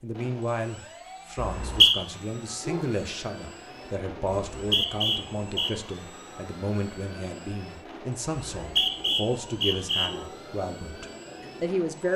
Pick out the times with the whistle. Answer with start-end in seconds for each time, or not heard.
1.4-1.9, 4.5-5.7, 8.6-10.1.